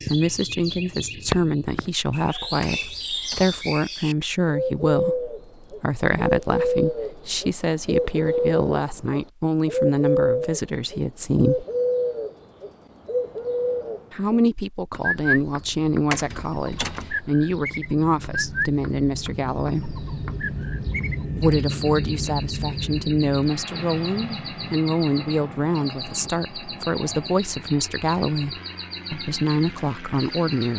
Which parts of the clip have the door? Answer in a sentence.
The door can be heard from 2.6 to 3.6 s and from 16.1 to 17.1 s.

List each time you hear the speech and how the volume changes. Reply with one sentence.
You can hear the speech from 0.1 to 11.7 s, at a steady volume; from 14.1 to 20.0 s, at a steady volume; and from 21.4 to 30.7 s, at a steady volume.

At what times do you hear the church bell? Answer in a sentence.
The church bell can't be heard in this clip.